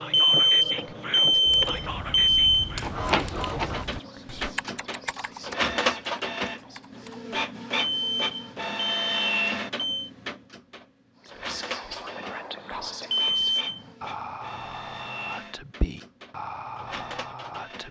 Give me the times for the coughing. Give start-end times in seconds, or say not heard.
not heard.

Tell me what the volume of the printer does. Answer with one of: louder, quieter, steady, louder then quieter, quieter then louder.
quieter.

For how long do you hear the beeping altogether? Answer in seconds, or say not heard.
6 s.